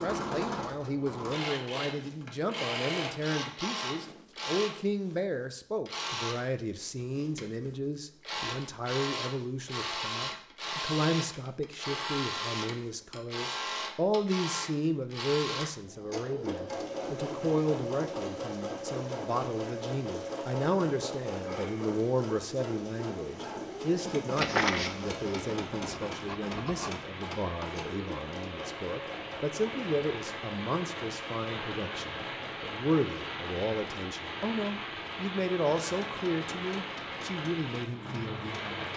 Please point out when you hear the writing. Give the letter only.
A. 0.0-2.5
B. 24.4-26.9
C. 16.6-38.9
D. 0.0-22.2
B.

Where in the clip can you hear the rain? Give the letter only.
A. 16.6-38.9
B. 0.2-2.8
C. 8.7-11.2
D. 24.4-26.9
A.